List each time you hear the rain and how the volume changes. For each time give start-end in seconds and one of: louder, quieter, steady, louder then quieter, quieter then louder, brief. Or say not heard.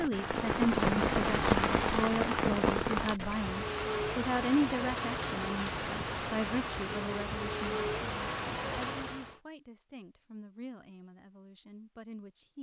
0.0-9.4 quieter.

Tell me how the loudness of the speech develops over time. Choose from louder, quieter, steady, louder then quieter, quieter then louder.
quieter.